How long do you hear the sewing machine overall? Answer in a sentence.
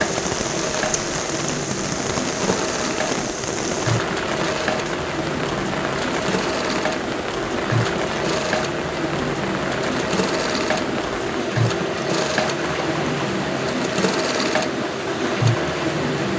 You can hear the sewing machine for 16 seconds altogether.